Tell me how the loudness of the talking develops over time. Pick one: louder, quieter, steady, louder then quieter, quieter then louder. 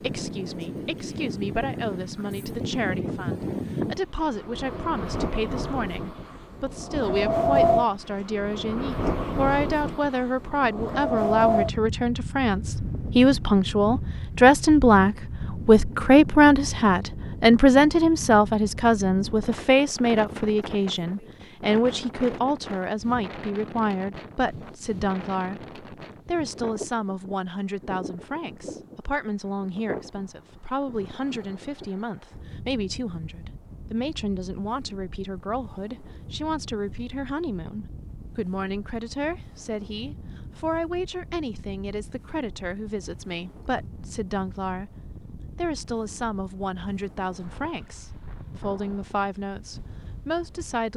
louder then quieter.